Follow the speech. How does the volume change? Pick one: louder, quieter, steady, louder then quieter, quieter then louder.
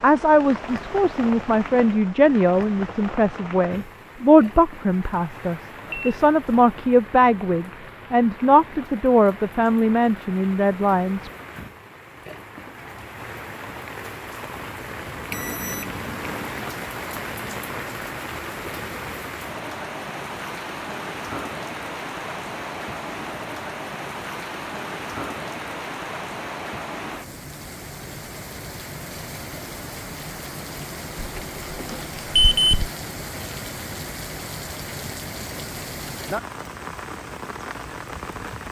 steady.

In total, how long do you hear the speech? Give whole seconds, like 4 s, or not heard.
11 s.